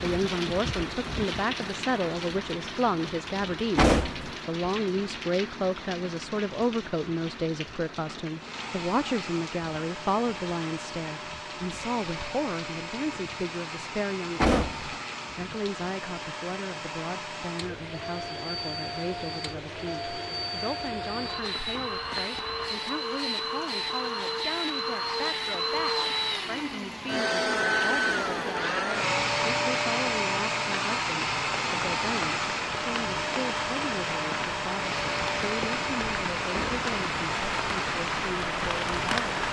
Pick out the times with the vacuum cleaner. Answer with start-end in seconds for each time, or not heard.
8.3-39.4.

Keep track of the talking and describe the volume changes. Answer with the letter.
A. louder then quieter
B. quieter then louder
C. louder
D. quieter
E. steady
D.